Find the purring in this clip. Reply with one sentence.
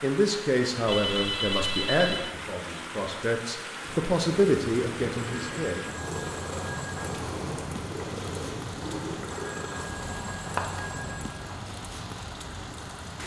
You can hear the purring from 3.8 to 13.2 s.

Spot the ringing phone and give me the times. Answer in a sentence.
You can hear the ringing phone from 0.8 to 2.4 s, from 5.2 to 7.2 s and from 9.3 to 11.4 s.